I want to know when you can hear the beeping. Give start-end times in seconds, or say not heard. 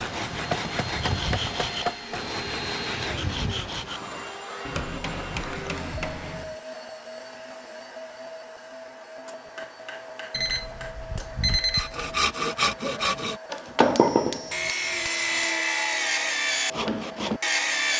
10.3-12.1.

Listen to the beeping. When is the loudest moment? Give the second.
12 s.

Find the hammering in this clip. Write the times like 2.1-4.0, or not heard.
0.3-2.2, 4.6-6.5, 9.2-11.8, 13.8-15.6.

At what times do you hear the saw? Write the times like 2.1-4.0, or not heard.
0.0-4.0, 11.8-17.9.